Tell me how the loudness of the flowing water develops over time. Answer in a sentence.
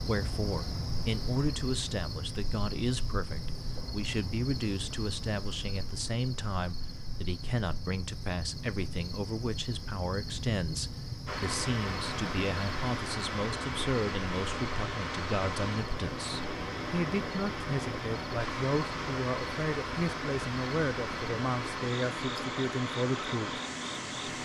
The loudness of the flowing water stays about the same.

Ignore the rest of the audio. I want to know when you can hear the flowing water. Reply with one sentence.
The flowing water can be heard from 11.2 to 24.4 s.